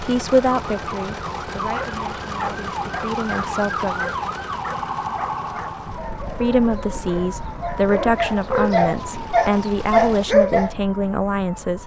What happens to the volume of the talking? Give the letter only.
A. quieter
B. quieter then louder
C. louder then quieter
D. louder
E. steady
B.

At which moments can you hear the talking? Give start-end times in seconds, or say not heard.
0.0-4.2, 6.4-11.8.